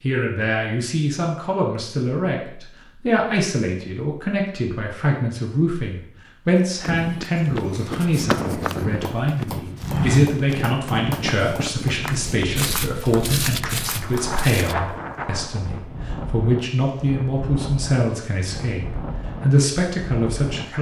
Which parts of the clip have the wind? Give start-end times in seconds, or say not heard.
6.8-20.7.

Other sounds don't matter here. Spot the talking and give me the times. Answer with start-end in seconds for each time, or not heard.
0.0-20.7.